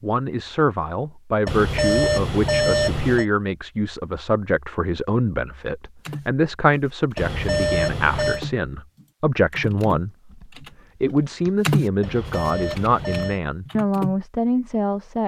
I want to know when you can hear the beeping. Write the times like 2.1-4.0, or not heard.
1.4-3.2, 7.2-8.4, 12.0-13.4.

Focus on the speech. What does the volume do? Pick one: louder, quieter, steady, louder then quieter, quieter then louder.
steady.